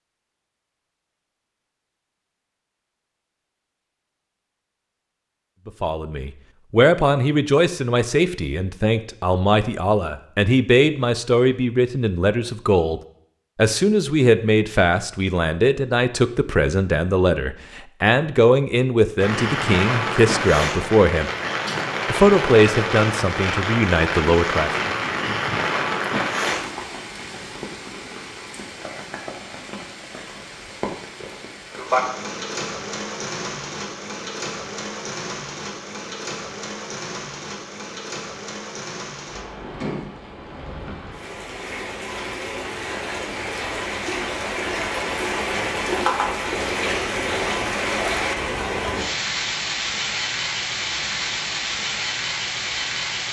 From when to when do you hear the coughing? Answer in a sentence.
The coughing can't be heard in this clip.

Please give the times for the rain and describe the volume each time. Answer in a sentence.
The rain can be heard from 19.2 to 53.2 s, getting quieter then louder.